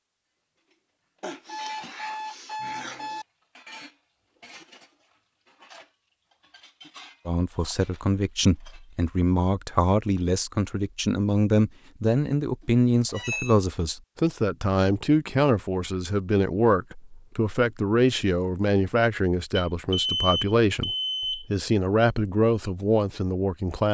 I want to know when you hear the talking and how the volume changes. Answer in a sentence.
You can hear the talking from 7.2 to 23.9 s, at a steady volume.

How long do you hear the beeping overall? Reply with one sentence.
The beeping can be heard for 5 seconds in total.